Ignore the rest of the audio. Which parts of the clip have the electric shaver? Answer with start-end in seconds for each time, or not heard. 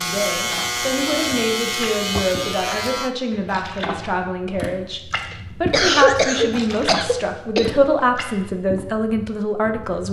0.0-3.1.